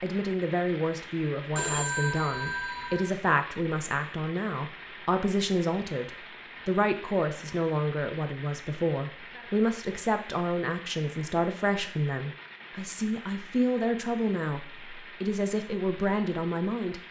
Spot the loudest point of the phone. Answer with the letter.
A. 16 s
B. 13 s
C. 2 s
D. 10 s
C.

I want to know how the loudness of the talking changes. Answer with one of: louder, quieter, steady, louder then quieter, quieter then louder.
steady.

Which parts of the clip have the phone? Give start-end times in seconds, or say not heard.
1.6-3.1.